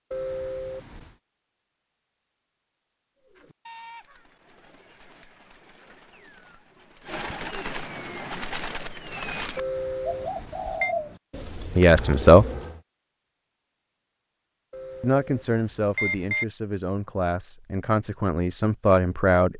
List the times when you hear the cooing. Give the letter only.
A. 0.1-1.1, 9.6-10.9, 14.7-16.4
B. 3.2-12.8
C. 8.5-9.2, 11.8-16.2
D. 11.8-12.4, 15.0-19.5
B.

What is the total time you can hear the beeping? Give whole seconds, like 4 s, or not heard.
4 s.